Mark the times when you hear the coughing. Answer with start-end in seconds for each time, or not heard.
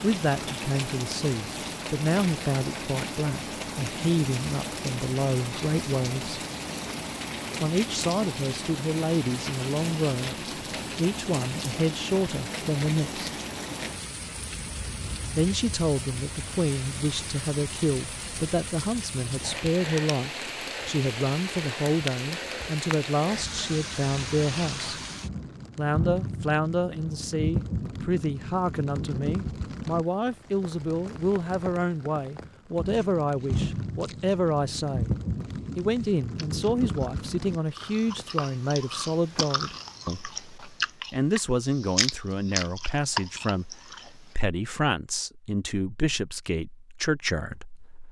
not heard.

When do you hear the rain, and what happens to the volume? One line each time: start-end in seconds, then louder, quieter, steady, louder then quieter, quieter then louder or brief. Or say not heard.
0.0-38.2 steady.